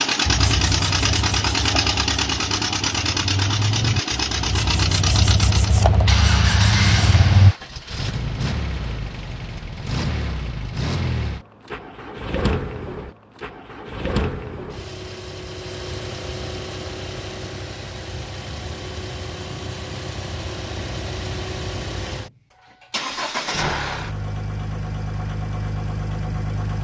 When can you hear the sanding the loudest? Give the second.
7 s.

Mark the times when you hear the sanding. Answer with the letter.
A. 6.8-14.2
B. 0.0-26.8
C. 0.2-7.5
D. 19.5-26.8
C.